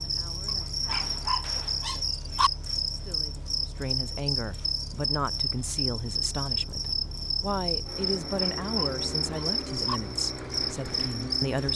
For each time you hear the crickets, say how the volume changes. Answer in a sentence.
The crickets can be heard from 0.0 to 11.7 s, at a steady volume.